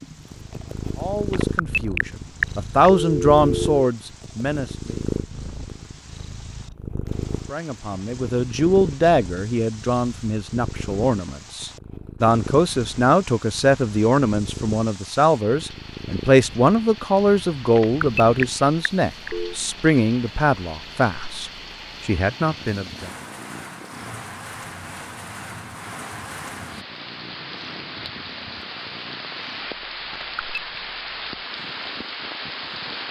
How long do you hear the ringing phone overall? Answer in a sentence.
The ringing phone can be heard for 5 seconds in total.